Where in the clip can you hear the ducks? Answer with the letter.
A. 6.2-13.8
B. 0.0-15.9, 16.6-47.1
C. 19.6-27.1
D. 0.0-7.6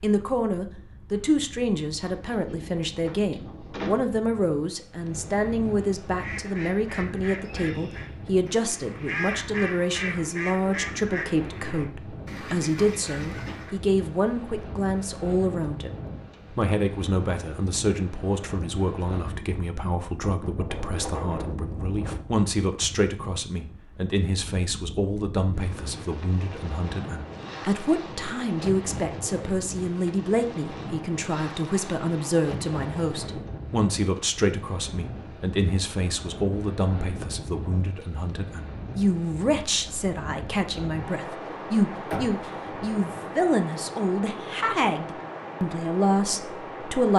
A.